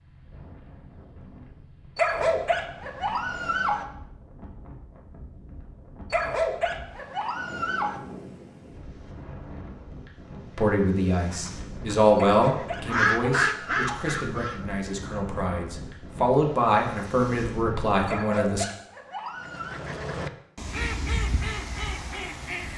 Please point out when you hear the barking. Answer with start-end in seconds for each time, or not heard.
1.9-3.9, 6.1-8.0, 12.2-14.1, 18.1-19.8.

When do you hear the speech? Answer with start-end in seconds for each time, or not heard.
10.6-18.6.